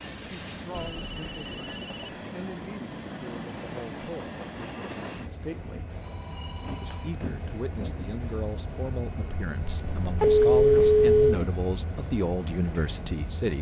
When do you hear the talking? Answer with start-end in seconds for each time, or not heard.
0.0-6.0, 6.8-13.5.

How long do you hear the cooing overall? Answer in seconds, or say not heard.
not heard.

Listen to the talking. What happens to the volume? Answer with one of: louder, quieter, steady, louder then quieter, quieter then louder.
louder.